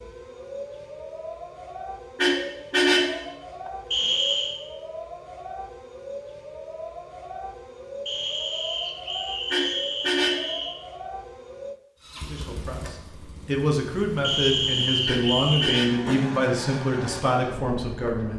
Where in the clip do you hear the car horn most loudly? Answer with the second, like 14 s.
3 s.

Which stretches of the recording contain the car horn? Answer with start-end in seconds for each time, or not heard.
2.1-3.2, 9.5-10.6, 15.1-16.0.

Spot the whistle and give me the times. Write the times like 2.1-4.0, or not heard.
3.9-4.5, 8.1-10.8, 14.2-15.8.